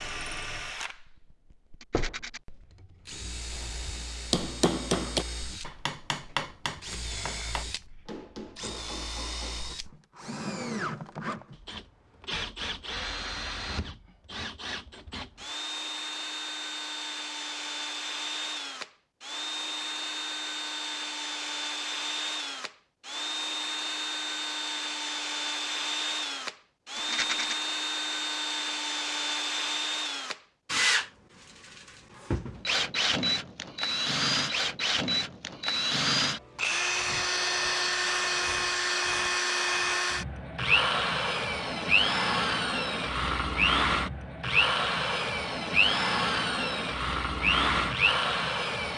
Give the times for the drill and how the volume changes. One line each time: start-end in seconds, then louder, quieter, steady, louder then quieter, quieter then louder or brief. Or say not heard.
0.0-48.9 louder.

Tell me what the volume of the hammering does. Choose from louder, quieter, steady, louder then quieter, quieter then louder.
quieter.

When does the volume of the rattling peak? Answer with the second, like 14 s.
27 s.